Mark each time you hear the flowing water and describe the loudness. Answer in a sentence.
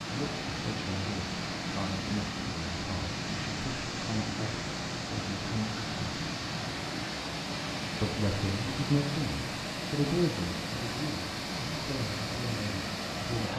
The flowing water can be heard from 0.0 to 13.5 s, at a steady volume.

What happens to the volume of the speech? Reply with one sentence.
The loudness of the speech goes up, then down.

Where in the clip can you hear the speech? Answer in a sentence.
You can hear the speech from 0.0 to 6.2 s and from 8.0 to 13.5 s.